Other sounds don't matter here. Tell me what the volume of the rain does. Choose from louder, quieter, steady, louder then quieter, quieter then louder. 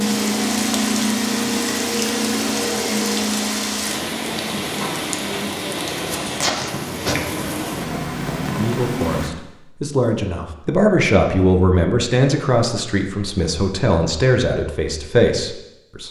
steady.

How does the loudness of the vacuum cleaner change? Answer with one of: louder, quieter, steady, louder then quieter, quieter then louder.
steady.